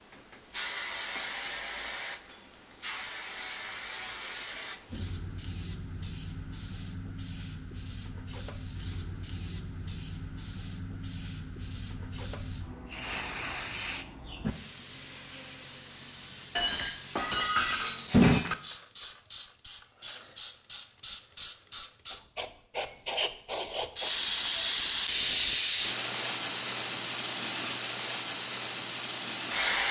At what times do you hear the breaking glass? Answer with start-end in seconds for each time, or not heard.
1.1-2.6, 16.6-18.6.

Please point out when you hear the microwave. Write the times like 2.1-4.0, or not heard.
not heard.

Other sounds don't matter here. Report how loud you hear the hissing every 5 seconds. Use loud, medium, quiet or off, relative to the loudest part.
medium, quiet, medium, loud, loud, loud.